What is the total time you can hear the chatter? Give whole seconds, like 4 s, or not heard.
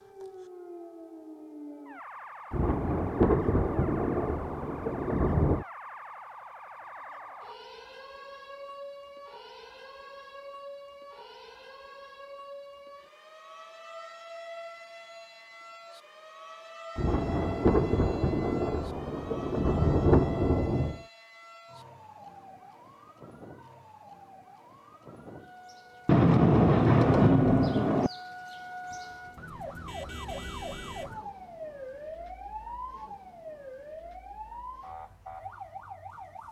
not heard.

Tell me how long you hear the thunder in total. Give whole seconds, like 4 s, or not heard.
9 s.